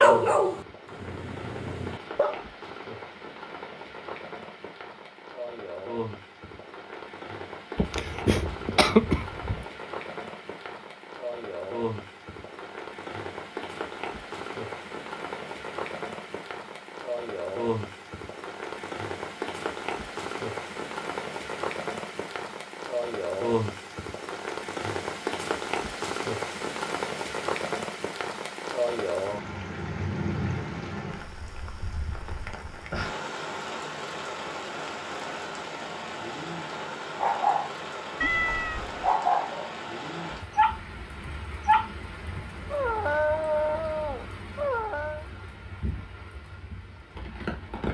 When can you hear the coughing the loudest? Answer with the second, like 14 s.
9 s.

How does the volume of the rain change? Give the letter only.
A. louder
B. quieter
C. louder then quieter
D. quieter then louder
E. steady
C.